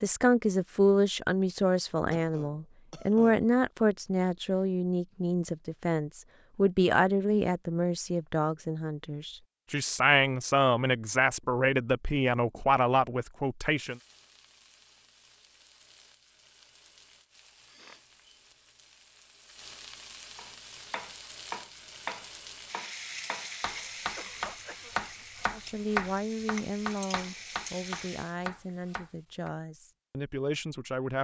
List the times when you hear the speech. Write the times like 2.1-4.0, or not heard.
0.0-13.9, 25.5-31.1.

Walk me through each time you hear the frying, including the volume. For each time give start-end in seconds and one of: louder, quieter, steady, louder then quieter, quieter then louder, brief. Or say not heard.
13.8-28.4 louder.